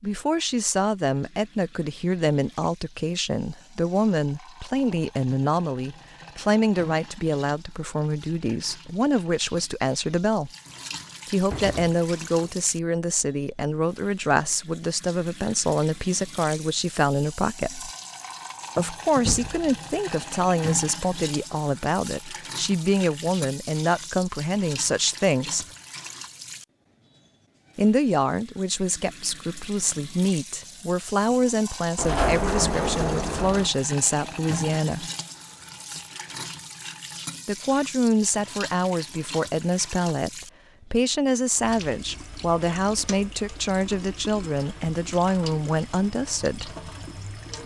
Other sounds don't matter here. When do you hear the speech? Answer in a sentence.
You can hear the speech from 0.0 to 10.5 s, from 11.2 to 17.9 s, from 18.8 to 25.6 s, from 27.8 to 35.1 s and from 37.5 to 46.7 s.